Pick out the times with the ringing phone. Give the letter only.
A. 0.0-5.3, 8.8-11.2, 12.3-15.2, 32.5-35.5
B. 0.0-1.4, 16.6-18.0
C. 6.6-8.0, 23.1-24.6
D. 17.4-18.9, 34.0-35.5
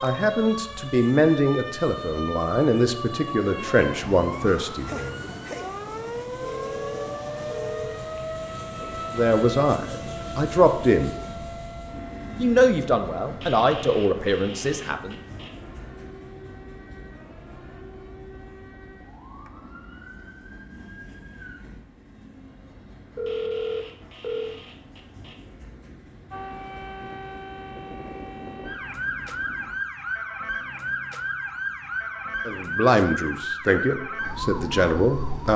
C.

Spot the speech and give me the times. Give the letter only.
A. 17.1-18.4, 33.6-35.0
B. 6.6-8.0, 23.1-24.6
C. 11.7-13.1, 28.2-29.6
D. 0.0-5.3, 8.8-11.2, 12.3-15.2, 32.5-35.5
D.